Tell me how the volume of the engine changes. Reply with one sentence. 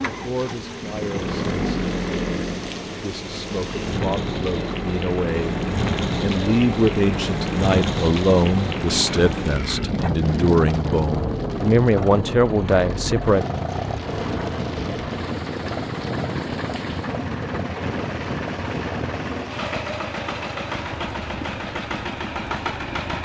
The volume of the engine stays about the same.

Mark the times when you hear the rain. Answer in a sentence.
The rain can be heard from 0.0 to 23.1 s.